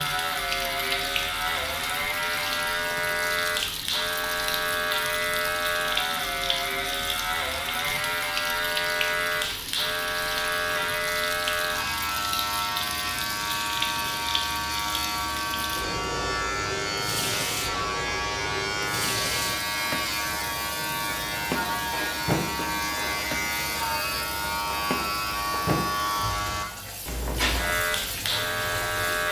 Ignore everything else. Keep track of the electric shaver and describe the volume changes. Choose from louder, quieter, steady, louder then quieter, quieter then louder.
steady.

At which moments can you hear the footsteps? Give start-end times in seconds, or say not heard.
not heard.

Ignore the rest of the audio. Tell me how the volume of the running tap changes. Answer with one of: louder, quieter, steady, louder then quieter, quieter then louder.
steady.